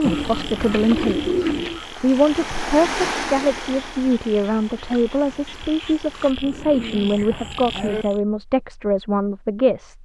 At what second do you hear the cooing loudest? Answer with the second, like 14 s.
1 s.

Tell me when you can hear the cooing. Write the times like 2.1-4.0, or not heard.
0.0-1.8, 6.4-8.1.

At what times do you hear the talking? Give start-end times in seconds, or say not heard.
0.0-10.0.